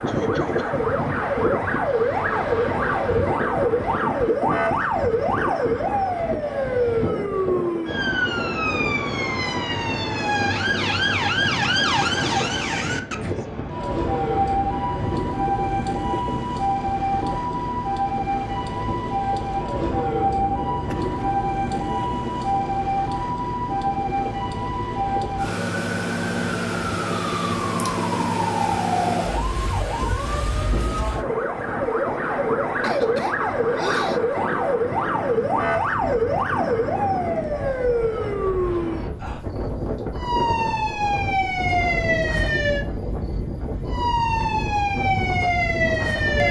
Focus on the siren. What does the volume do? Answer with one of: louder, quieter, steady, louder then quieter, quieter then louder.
steady.